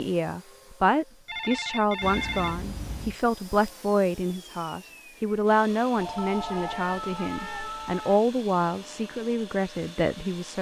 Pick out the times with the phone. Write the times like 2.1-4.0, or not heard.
1.2-2.5, 6.0-7.7.